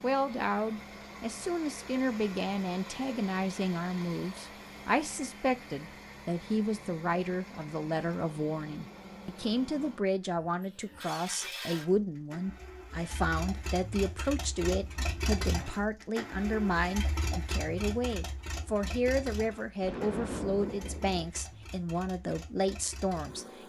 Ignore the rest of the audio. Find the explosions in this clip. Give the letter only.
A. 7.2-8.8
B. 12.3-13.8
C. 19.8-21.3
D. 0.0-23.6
C.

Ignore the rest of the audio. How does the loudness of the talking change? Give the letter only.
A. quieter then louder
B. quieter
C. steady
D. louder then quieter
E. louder
C.